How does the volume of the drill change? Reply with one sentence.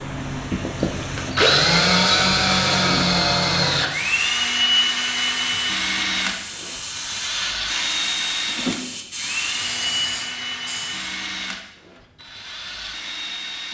The volume of the drill goes down.